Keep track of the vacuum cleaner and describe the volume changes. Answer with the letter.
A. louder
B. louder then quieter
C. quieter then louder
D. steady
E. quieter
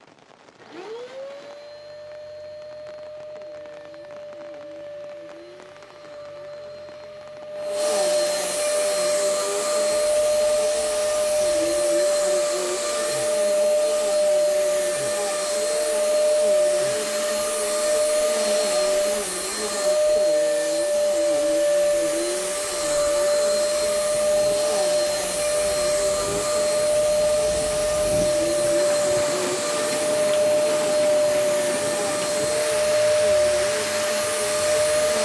A.